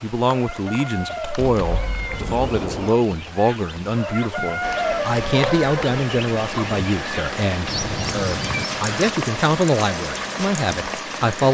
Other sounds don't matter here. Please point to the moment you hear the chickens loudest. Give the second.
5 s.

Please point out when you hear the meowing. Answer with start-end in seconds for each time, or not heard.
1.4-2.9, 7.7-9.1.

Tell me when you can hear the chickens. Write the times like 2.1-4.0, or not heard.
0.2-9.0.